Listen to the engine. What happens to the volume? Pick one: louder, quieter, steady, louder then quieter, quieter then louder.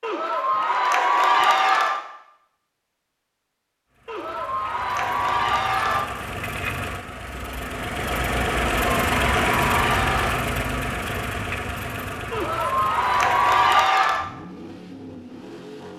louder then quieter.